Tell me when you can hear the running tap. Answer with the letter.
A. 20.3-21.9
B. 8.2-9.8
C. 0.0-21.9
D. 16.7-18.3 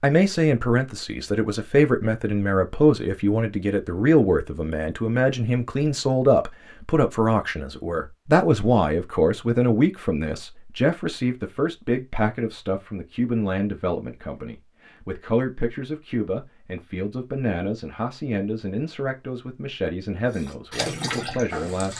A.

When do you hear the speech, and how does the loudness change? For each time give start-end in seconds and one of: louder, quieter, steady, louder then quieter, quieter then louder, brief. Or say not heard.
0.0-21.9 quieter.